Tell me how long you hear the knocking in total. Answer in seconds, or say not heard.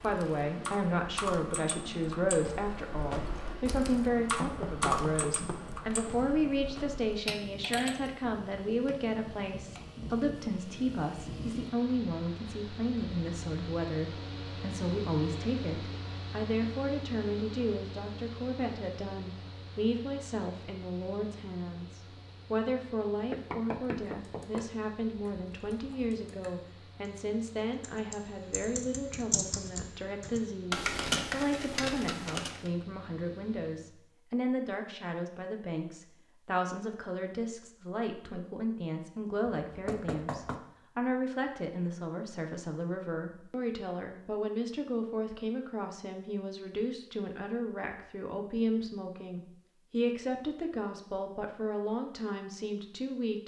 4 s.